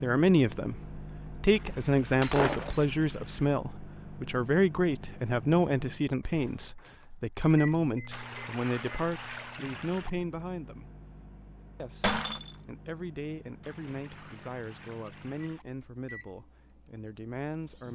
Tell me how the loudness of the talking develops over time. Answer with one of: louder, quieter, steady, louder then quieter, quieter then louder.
quieter.